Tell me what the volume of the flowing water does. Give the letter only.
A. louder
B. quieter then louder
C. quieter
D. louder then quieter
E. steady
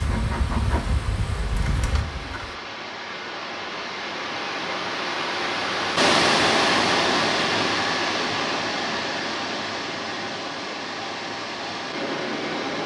D.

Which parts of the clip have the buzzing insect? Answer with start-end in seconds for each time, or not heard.
0.0-2.5.